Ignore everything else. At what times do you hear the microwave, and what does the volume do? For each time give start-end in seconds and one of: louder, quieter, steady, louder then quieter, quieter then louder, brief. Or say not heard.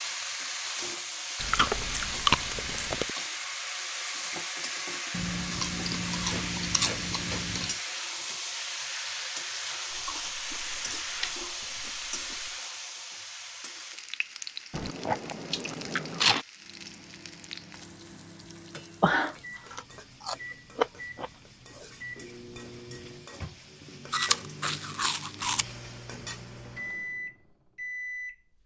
16.6-28.4 louder.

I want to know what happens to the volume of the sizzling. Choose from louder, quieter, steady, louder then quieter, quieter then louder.
quieter.